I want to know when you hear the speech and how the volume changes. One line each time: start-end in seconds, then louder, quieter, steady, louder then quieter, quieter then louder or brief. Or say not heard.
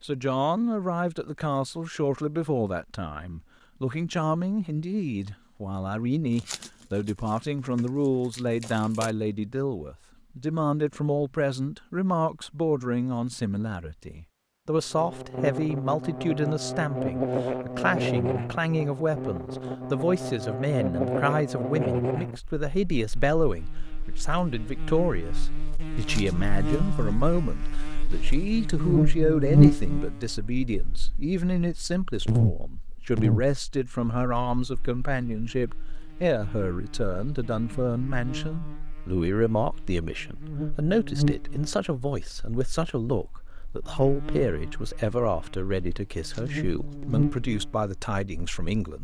0.0-48.9 steady.